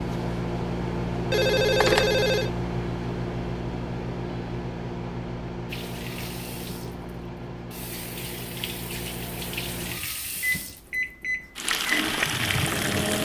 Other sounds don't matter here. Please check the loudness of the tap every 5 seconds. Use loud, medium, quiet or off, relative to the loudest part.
off, medium, loud.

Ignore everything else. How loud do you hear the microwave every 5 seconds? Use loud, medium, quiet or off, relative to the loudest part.
loud, medium, loud.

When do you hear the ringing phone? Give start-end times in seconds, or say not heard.
1.3-2.5.